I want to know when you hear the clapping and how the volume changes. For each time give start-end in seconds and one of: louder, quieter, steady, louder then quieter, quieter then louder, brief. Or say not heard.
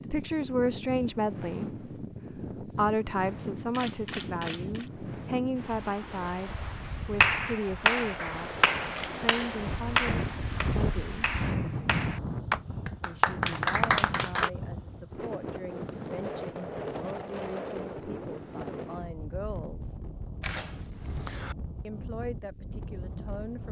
7.2-14.5 quieter then louder.